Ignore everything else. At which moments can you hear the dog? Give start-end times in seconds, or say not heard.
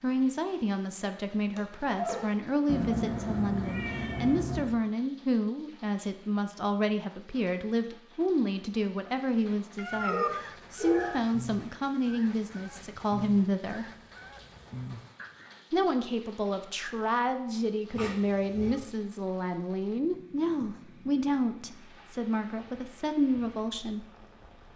1.6-2.4, 10.1-11.2, 17.9-18.9.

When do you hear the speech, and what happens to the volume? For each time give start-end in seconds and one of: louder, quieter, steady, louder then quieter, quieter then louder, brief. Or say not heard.
0.0-13.8 steady
15.7-24.1 steady.